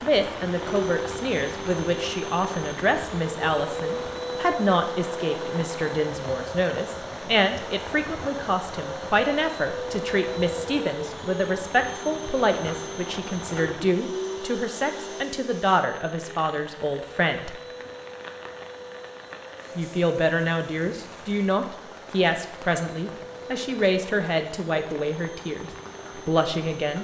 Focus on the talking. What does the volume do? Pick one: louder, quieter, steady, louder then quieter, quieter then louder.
steady.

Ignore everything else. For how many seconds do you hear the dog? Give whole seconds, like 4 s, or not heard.
not heard.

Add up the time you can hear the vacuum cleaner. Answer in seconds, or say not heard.
27 s.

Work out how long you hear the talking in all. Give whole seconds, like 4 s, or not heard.
25 s.